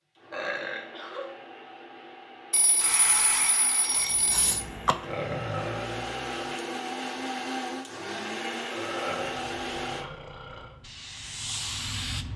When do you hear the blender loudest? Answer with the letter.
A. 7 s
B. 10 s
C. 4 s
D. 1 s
A.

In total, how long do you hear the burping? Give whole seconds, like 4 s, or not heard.
5 s.